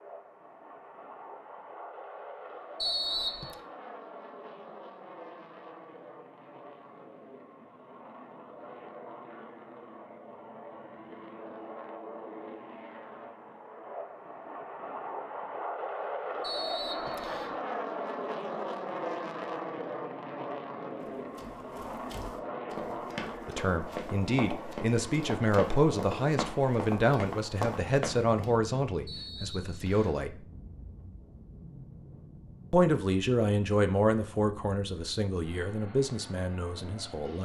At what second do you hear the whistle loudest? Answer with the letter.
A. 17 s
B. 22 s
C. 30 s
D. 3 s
D.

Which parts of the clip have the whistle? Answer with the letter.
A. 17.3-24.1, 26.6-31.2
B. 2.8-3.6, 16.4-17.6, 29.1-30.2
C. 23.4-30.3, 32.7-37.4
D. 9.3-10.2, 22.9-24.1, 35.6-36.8
B.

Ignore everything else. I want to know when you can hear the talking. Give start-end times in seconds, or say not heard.
23.4-30.3, 32.7-37.4.